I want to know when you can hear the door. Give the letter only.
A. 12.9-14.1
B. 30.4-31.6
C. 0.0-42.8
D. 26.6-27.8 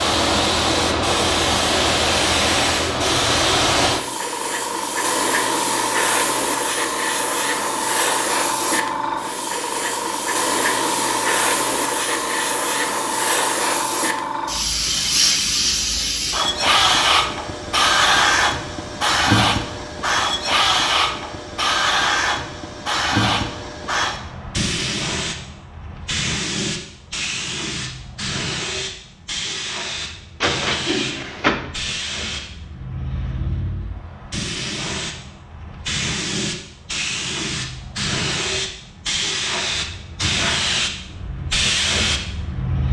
B.